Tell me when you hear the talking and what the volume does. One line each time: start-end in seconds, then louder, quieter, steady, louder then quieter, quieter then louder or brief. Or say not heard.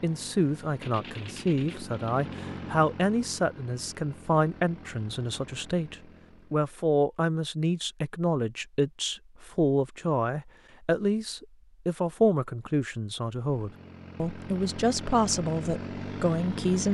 0.0-16.8 steady.